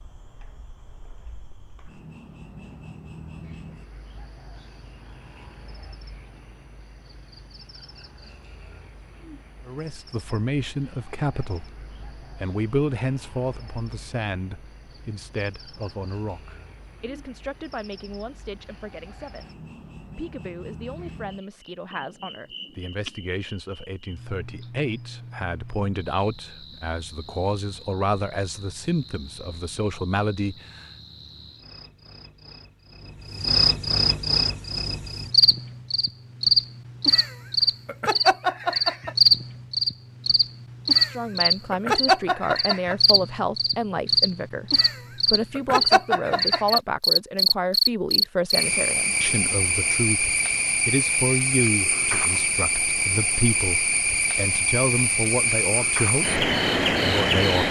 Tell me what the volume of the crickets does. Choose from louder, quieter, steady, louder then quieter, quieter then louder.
louder.